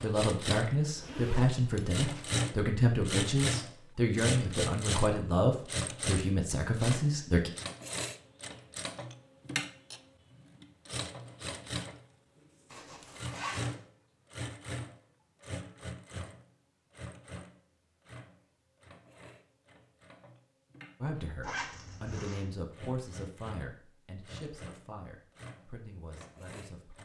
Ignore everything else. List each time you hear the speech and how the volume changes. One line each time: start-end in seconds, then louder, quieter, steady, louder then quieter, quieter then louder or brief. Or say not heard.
0.0-7.5 steady
21.0-26.9 quieter.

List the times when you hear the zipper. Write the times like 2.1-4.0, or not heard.
0.9-2.3, 12.7-13.8, 21.4-22.4.